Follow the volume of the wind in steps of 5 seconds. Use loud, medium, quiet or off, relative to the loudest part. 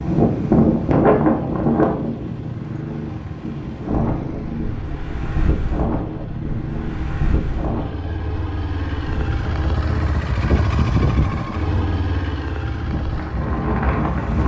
loud, medium, medium.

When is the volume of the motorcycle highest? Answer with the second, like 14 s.
11 s.